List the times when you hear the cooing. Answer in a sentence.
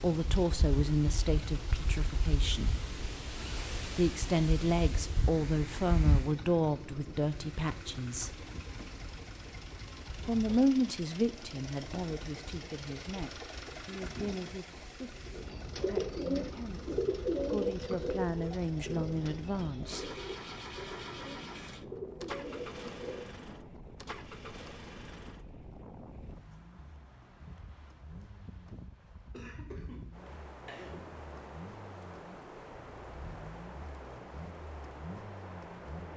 The cooing can be heard from 15.3 to 23.2 s.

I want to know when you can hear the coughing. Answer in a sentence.
You can hear the coughing from 29.3 to 31.1 s.